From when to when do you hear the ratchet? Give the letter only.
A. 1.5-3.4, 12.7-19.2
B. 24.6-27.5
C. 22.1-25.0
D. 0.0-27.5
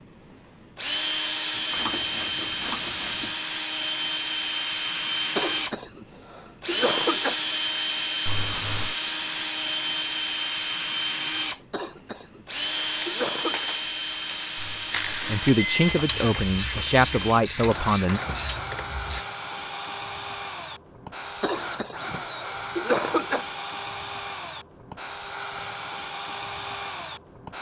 A.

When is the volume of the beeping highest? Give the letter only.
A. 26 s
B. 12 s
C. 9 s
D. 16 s
D.